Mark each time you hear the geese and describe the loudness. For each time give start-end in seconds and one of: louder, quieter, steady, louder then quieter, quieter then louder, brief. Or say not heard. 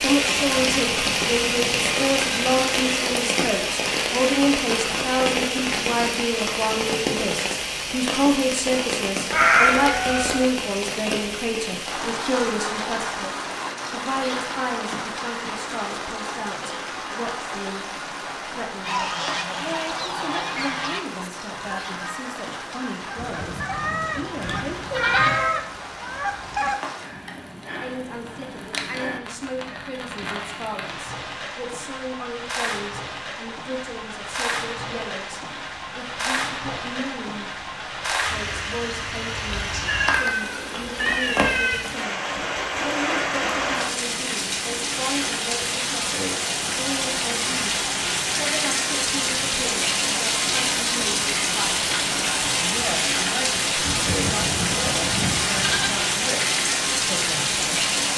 18.8-26.8 quieter then louder.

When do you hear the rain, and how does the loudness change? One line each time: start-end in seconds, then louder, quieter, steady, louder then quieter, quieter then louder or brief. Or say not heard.
0.0-58.1 quieter then louder.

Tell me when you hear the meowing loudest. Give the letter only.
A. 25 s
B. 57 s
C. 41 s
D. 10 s
D.